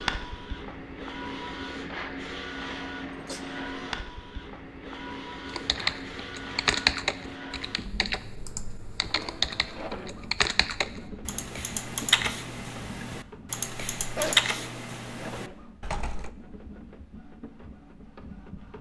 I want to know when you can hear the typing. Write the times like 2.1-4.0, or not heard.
5.5-16.3.